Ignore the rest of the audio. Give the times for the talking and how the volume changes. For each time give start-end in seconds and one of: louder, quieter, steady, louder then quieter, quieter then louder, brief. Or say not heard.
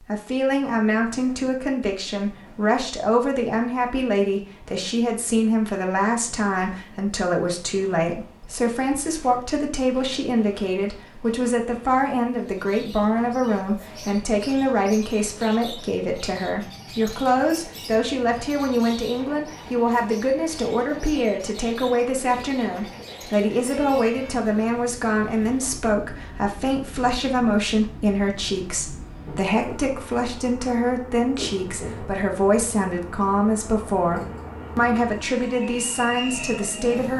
0.0-37.1 steady.